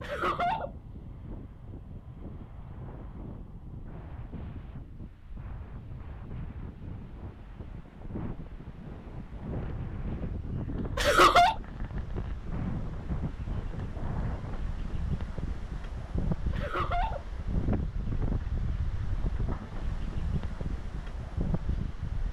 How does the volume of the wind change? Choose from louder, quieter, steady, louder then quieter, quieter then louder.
louder.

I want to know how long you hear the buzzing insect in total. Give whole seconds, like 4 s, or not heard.
not heard.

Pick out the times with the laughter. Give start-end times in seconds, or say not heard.
0.0-0.7, 10.9-11.6, 16.5-17.2.